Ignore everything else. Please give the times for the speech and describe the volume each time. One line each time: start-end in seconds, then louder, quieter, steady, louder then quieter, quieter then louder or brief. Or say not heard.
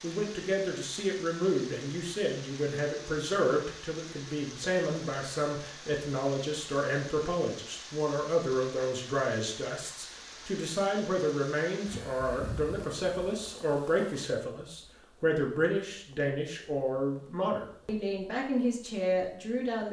0.0-19.8 steady.